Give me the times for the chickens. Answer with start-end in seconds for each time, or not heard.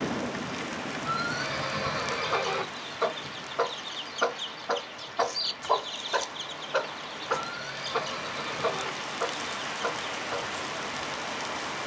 2.1-10.6.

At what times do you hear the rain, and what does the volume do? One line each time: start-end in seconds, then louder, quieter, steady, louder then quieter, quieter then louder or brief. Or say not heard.
0.0-11.8 quieter then louder.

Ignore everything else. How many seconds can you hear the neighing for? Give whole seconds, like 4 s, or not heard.
3 s.